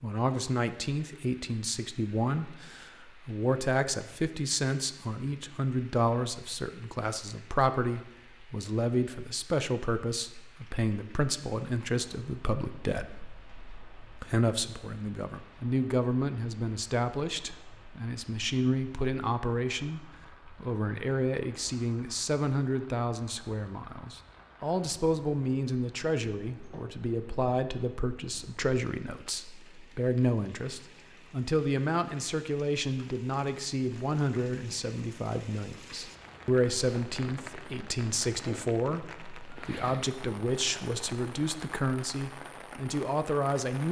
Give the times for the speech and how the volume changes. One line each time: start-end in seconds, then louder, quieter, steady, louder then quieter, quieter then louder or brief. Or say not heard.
0.0-43.8 steady.